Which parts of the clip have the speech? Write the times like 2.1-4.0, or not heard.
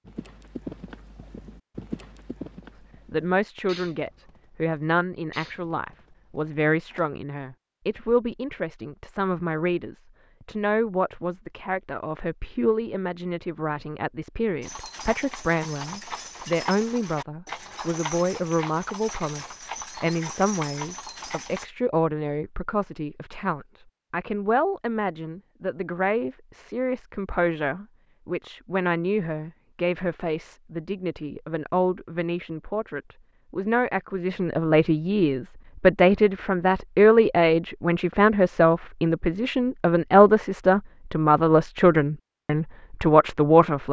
3.1-43.8.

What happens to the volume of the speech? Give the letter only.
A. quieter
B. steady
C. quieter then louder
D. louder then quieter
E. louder
E.